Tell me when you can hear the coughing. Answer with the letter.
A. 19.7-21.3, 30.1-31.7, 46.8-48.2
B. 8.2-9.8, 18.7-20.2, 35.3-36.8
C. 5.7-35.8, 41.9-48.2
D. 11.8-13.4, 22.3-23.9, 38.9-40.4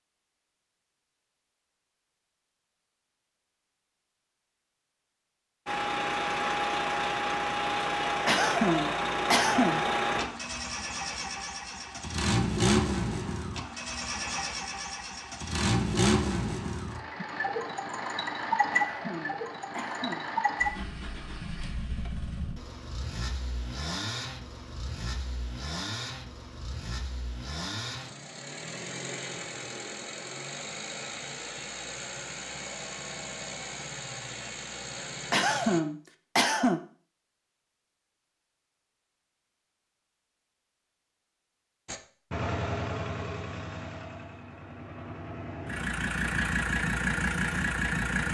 B.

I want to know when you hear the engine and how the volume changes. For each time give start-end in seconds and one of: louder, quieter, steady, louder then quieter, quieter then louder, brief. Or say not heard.
5.7-35.8 quieter
41.9-48.2 quieter then louder.